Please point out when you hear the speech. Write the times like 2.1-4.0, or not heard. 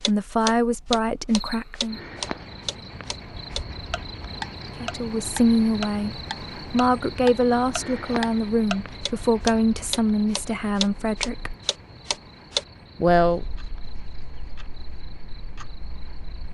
0.1-2.0, 4.8-11.6, 13.0-13.4.